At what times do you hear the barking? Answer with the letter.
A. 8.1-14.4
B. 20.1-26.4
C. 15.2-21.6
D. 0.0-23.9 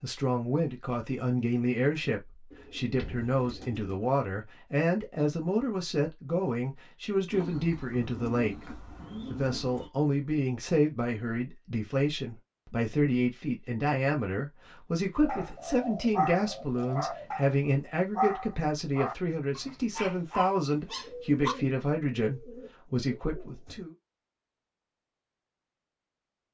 C.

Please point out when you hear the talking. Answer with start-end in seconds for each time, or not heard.
0.0-23.9.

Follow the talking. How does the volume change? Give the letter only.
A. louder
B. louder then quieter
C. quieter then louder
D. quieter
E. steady
E.